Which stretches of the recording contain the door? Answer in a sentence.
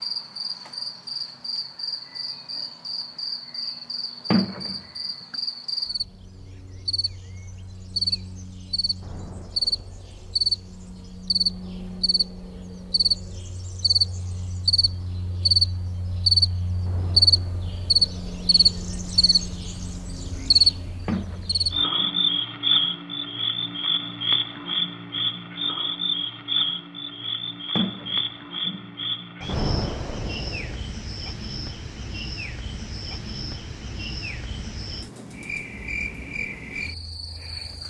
The door can be heard from 4.3 to 4.8 s, from 21.1 to 22.2 s and from 27.8 to 28.9 s.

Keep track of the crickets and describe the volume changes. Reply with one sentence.
The loudness of the crickets goes up, then down.